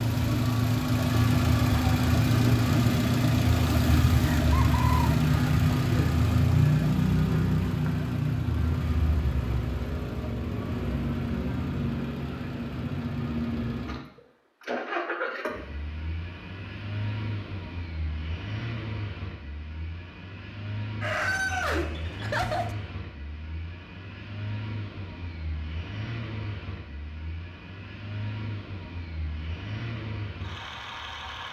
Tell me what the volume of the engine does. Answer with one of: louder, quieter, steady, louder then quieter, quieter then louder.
quieter.